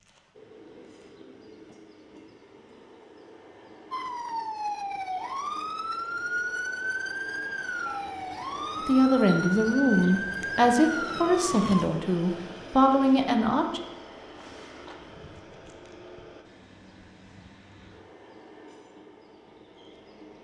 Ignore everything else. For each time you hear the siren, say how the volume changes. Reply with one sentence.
You can hear the siren from 3.9 to 11.8 s, at a steady volume.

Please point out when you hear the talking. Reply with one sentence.
You can hear the talking from 8.8 to 13.8 s.